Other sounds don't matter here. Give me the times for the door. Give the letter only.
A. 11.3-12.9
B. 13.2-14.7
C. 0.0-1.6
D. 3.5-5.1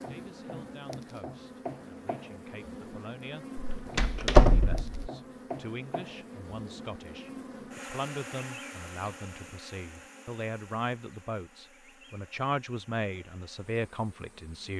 D.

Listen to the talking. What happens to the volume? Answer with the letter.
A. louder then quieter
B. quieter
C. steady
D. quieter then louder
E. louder
E.